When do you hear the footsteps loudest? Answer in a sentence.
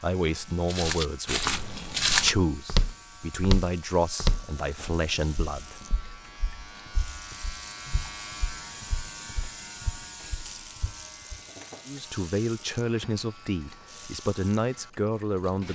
The loudest moment of the footsteps is at 2 seconds.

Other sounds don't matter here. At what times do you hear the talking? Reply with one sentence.
You can hear the talking from 0.0 to 5.8 s and from 11.8 to 15.6 s.